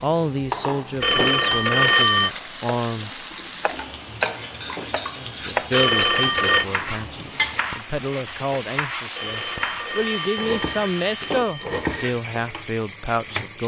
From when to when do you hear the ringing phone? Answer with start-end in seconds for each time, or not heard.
1.0-2.3, 5.7-6.7, 9.2-11.7.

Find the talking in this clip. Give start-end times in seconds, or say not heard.
0.0-3.1, 5.2-13.6.